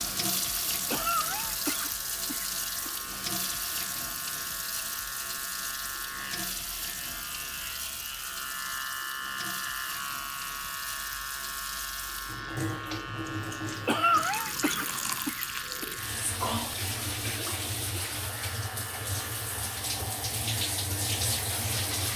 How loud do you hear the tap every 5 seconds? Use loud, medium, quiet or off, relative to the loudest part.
loud, medium, medium, loud, loud.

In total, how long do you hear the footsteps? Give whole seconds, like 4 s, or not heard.
not heard.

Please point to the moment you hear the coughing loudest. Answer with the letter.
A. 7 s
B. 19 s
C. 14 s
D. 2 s
C.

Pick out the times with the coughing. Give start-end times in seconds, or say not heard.
0.9-2.9, 13.8-15.8.